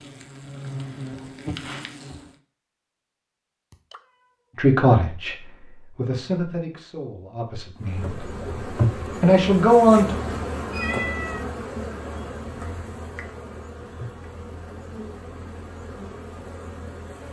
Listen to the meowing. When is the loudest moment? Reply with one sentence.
The loudest moment of the meowing is at 11 seconds.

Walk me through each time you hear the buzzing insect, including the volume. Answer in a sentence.
The buzzing insect can be heard briefly from 0.0 to 2.4 s; and from 7.8 to 17.2 s, getting quieter.